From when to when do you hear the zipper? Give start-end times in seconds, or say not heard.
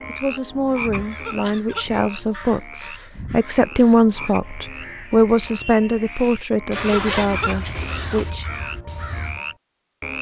6.7-8.3.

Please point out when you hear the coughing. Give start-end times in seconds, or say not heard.
1.1-1.9, 6.8-7.7.